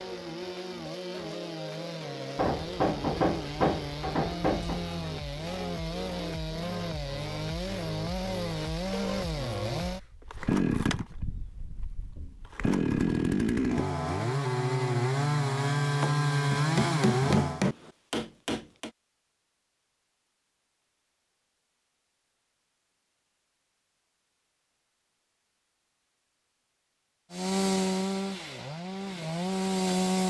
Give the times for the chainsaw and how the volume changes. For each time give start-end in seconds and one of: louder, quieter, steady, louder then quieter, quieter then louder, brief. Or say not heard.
0.0-17.6 louder
27.3-30.2 brief.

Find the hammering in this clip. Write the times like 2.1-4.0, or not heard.
2.4-4.8, 16.0-18.9.